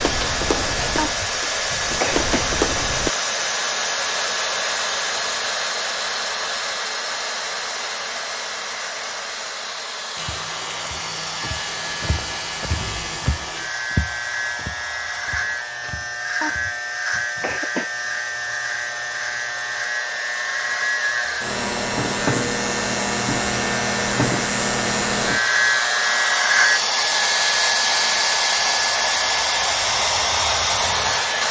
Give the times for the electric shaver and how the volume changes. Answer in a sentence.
You can hear the electric shaver from 10.2 to 26.8 s, getting louder.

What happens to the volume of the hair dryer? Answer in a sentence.
The volume of the hair dryer goes down, then up.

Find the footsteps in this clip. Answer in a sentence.
The footsteps can be heard from 0.0 to 3.1 s and from 10.2 to 16.8 s.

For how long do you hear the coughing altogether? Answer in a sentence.
The coughing can be heard for 3 seconds in total.